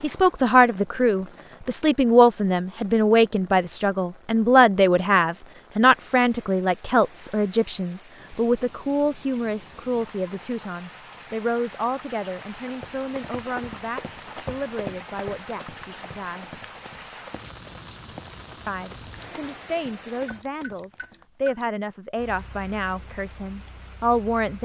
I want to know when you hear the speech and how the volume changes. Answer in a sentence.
You can hear the speech from 0.0 to 16.6 s, getting quieter; and from 18.6 to 24.6 s, getting louder.